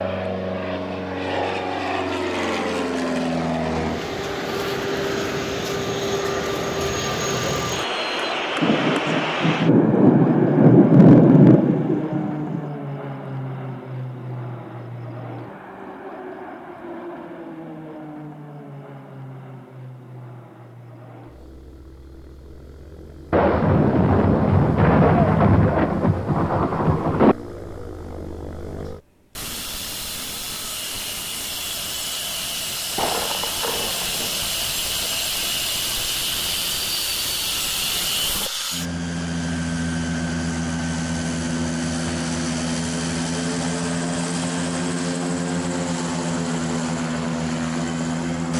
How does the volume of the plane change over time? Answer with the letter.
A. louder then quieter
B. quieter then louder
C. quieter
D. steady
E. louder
B.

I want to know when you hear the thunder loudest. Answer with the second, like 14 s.
11 s.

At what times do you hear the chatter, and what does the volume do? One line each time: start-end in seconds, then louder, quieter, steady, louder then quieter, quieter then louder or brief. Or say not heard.
not heard.